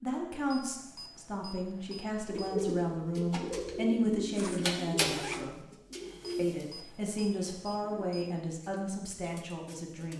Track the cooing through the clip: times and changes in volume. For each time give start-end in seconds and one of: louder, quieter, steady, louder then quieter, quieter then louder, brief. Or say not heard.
2.2-10.1 quieter.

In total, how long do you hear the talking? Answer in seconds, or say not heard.
9 s.